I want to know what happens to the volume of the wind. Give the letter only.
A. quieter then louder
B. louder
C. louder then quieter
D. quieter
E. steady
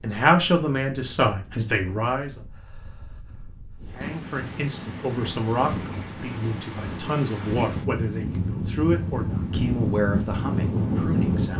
B.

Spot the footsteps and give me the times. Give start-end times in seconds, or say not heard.
not heard.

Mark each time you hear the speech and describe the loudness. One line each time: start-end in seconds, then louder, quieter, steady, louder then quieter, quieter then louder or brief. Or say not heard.
0.0-2.4 brief
4.0-11.5 quieter then louder.